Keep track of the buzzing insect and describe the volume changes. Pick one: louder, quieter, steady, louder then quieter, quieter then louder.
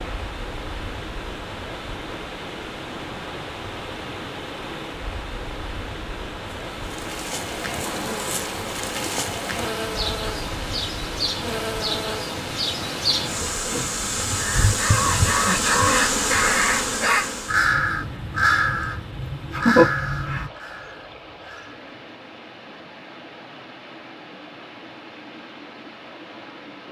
louder.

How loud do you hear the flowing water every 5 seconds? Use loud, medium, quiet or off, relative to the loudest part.
loud, loud, loud, medium, medium, medium.